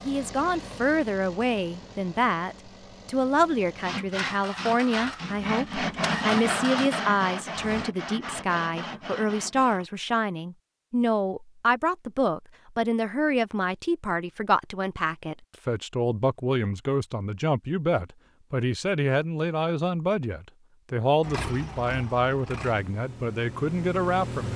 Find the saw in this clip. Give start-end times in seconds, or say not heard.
3.8-9.8.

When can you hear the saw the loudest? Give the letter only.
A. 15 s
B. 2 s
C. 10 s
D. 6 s
D.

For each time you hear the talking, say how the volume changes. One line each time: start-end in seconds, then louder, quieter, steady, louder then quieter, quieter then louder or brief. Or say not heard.
0.0-24.5 steady.